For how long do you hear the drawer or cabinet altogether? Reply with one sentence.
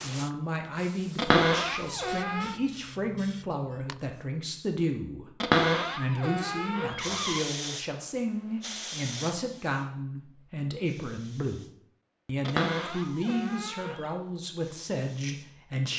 The drawer or cabinet can be heard for 5 seconds in total.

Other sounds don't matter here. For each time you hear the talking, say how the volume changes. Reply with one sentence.
You can hear the talking from 0.0 to 15.9 s, at a steady volume.